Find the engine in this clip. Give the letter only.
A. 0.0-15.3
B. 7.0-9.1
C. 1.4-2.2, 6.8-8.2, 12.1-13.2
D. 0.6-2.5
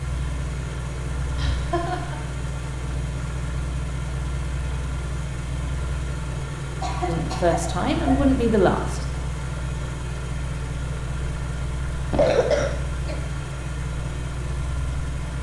A.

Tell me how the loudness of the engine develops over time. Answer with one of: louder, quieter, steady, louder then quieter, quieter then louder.
steady.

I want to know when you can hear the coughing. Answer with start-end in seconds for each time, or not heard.
1.4-2.2, 6.8-8.2, 12.1-13.2.